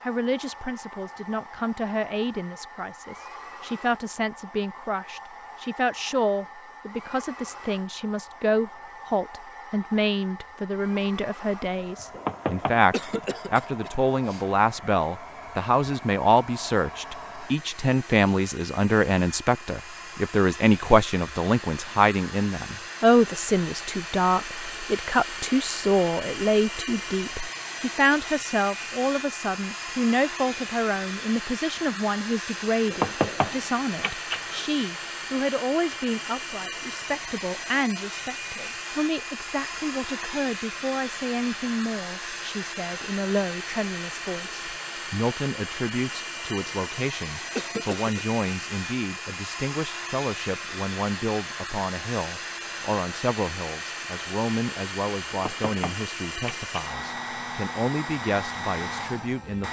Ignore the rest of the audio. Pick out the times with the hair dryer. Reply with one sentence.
The hair dryer can be heard from 0.0 to 59.6 s.